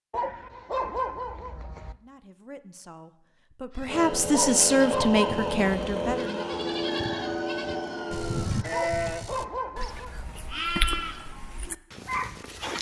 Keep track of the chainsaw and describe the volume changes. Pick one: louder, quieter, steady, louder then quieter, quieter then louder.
steady.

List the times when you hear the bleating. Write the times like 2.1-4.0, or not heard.
3.8-12.7.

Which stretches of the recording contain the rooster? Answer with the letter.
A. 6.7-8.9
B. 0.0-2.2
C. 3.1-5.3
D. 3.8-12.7
A.